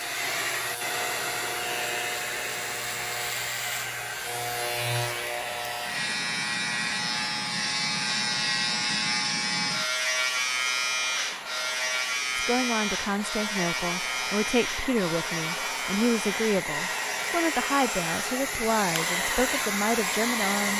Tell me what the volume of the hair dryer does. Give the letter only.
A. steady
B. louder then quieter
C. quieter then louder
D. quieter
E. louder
C.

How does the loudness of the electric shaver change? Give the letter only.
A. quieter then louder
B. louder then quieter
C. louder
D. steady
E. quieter
B.